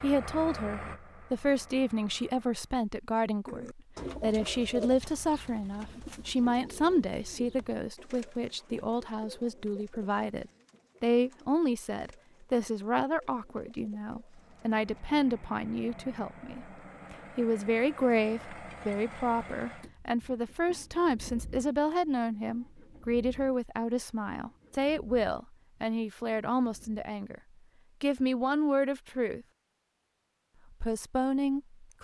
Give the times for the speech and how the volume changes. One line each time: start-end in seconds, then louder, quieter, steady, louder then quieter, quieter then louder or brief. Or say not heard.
0.0-27.4 steady
28.0-29.4 brief
30.8-32.0 brief.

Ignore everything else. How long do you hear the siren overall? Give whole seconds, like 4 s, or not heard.
not heard.